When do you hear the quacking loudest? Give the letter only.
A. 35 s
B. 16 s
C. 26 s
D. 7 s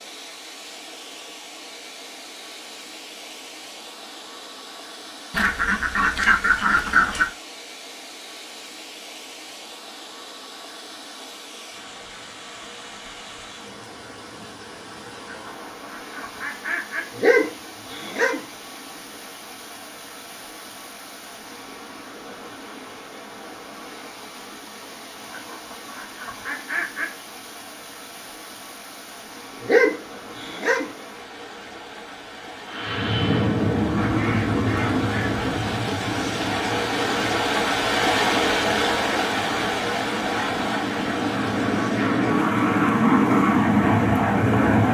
D.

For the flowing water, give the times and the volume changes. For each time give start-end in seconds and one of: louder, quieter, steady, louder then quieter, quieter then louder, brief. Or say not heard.
0.0-44.8 louder.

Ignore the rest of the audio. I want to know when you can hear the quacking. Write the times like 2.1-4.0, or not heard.
5.3-7.3, 15.2-17.1, 25.3-27.1, 34.0-35.8.